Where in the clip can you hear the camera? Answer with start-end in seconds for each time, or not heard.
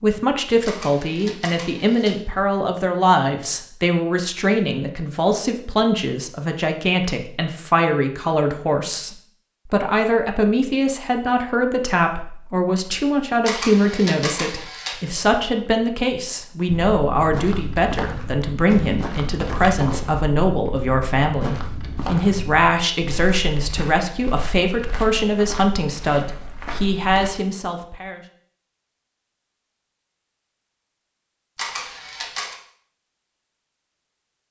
0.7-2.2, 13.4-15.0, 31.6-32.5.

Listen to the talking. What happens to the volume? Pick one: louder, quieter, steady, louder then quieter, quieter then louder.
steady.